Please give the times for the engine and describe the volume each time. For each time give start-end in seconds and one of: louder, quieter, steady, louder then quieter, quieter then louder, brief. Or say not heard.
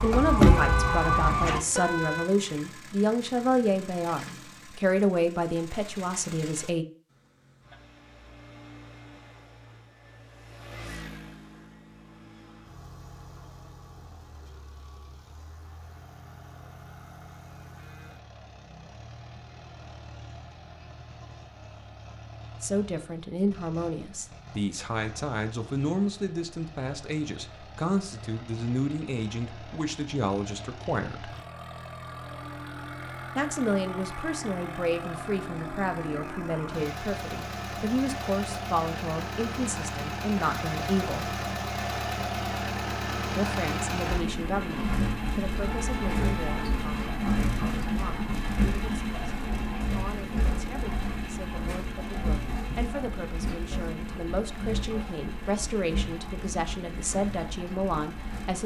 0.0-58.6 louder.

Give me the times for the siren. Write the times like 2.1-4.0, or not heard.
0.0-1.6.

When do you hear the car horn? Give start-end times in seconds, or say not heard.
0.4-2.3, 45.6-46.8.